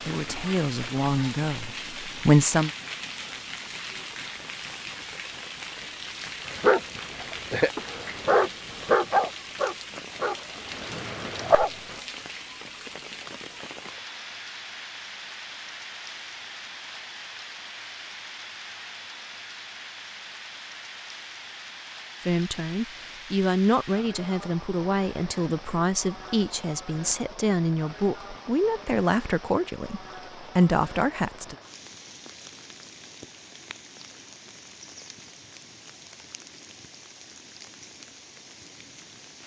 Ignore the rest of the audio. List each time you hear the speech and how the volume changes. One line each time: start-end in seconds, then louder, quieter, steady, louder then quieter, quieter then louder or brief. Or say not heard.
0.0-2.7 brief
22.2-31.6 steady.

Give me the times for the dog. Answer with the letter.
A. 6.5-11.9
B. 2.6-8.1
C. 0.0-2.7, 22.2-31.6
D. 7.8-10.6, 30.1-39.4
A.